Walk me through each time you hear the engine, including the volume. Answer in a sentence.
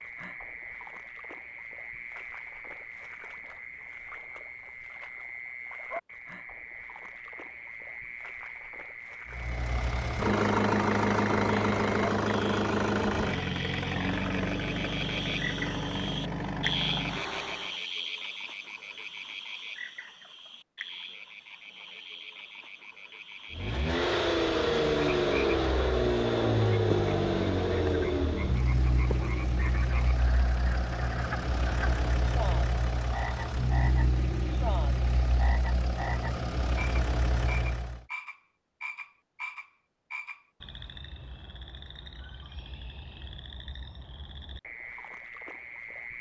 You can hear the engine from 9.2 to 17.8 s, getting quieter; and from 23.5 to 38.0 s, getting quieter.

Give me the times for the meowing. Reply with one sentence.
You can't hear the meowing here.